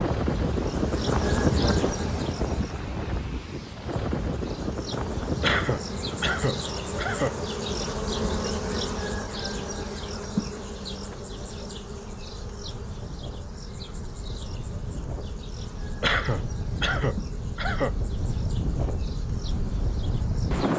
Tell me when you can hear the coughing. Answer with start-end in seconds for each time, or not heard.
5.4-7.3, 16.0-17.9.